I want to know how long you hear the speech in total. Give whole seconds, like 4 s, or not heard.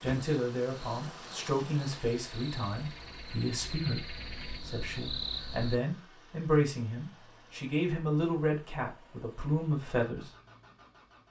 10 s.